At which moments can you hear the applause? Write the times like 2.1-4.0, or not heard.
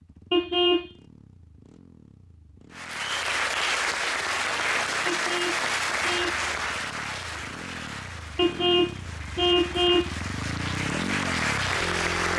2.7-12.3.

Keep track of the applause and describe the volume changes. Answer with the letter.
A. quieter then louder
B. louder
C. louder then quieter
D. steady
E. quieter
A.